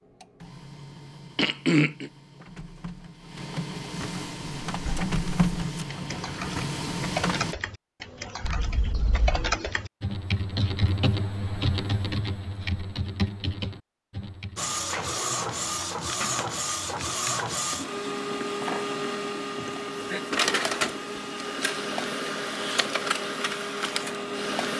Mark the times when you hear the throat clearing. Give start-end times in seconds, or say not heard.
1.4-2.1, 19.6-20.2.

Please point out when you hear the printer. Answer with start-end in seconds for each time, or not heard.
0.0-7.5, 14.6-24.7.